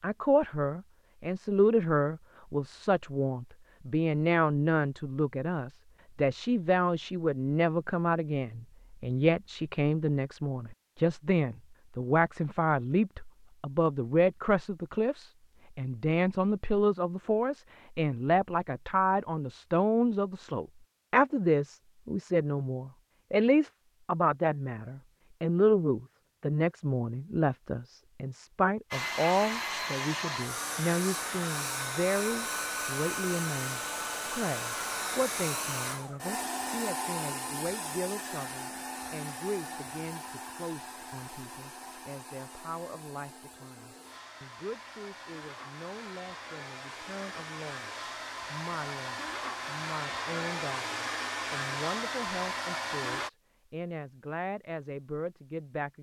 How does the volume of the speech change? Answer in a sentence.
The volume of the speech goes down.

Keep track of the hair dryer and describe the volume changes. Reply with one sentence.
The loudness of the hair dryer goes down, then up.